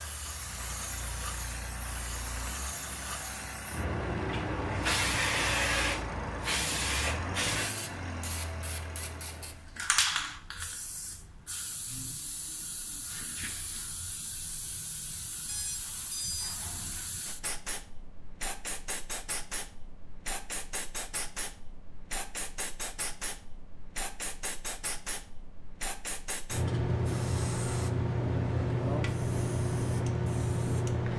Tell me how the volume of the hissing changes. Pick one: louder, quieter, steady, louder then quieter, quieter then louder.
quieter then louder.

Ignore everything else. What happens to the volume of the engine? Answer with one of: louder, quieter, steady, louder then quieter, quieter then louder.
steady.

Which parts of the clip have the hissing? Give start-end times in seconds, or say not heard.
0.0-31.1.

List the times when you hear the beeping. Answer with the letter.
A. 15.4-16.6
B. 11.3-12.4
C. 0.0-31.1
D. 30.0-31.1
A.